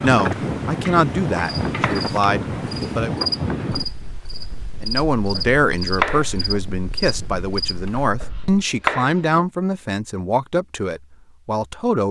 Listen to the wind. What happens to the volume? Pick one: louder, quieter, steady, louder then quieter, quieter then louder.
quieter.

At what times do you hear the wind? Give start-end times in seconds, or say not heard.
0.0-8.7.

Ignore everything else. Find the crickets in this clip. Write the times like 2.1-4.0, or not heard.
0.0-8.1.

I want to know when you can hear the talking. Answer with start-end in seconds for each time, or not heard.
0.0-3.3, 4.8-12.0.